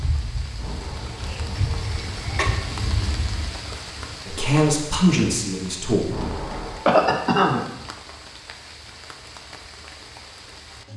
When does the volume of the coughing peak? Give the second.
7 s.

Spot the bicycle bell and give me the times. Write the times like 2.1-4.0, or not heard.
0.6-2.5, 6.1-6.8.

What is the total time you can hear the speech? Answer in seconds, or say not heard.
2 s.